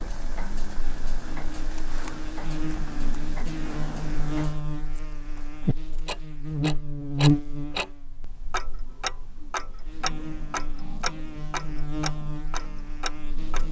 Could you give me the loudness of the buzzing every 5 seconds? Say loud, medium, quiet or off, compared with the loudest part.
medium, loud, medium.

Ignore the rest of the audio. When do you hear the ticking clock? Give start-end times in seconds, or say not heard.
0.0-13.6.